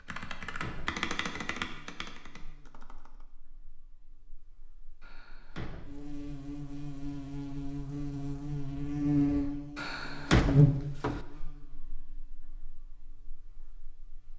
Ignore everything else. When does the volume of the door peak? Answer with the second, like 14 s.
10 s.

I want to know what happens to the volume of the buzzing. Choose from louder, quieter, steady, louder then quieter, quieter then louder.
louder then quieter.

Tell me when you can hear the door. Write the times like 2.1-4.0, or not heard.
0.1-1.6, 5.0-5.9, 9.8-11.2.